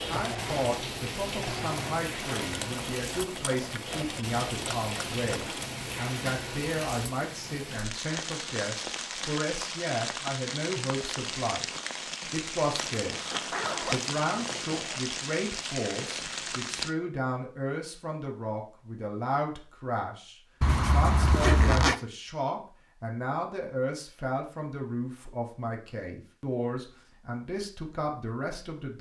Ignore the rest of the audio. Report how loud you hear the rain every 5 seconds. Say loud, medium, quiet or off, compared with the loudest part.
loud, loud, loud, loud, off, off.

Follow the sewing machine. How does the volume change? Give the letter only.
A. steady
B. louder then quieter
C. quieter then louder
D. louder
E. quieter
A.